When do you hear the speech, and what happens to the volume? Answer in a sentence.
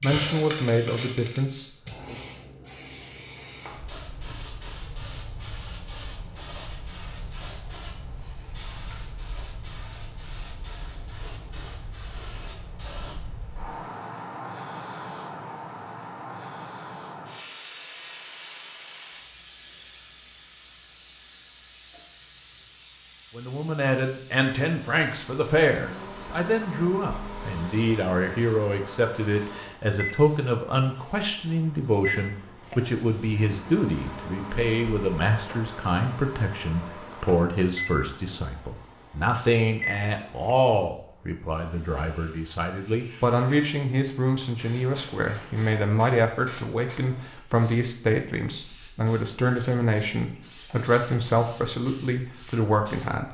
The speech can be heard briefly from 0.0 to 2.1 s; and from 23.4 to 53.3 s, at a steady volume.